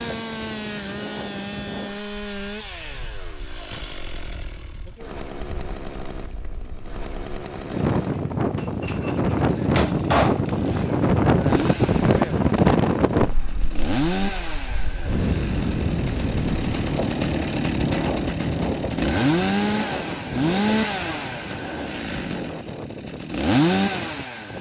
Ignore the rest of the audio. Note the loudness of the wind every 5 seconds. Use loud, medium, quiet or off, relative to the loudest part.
quiet, loud, loud, medium, quiet.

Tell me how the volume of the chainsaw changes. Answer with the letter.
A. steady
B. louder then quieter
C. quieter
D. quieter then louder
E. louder
E.